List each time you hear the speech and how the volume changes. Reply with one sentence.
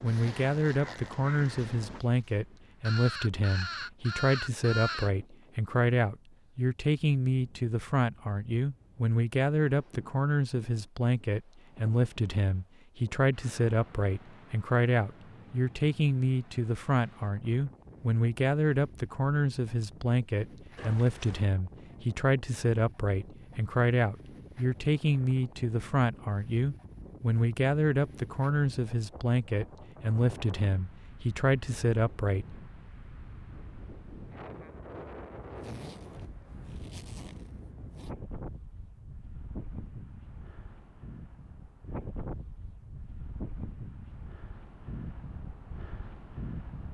You can hear the speech from 0.0 to 32.5 s, at a steady volume.